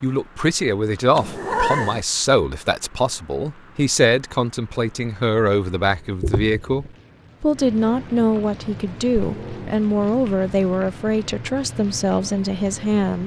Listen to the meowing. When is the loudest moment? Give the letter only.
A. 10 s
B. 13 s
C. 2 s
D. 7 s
C.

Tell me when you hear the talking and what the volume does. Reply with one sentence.
The talking can be heard from 0.0 to 13.2 s, at a steady volume.